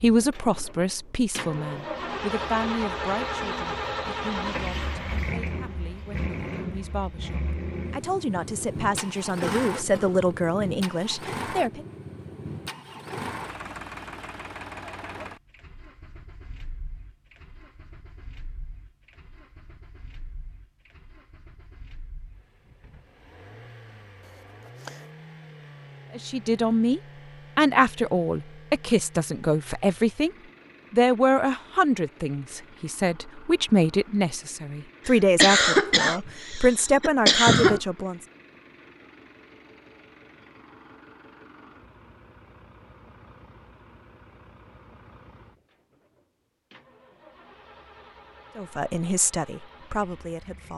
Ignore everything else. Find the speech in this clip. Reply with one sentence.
The speech can be heard from 0.0 to 11.8 s, from 26.1 to 30.3 s, from 30.9 to 38.2 s and from 48.5 to 50.7 s.